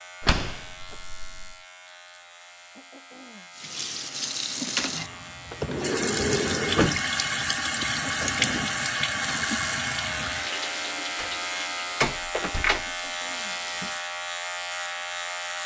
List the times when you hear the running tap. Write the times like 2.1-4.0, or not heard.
3.5-14.1.